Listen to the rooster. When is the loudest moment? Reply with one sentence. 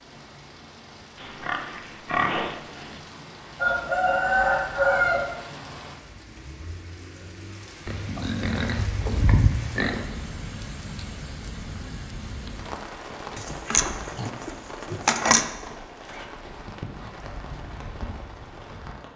The volume of the rooster peaks at 5 seconds.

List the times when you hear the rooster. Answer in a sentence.
You can hear the rooster from 3.5 to 5.3 s.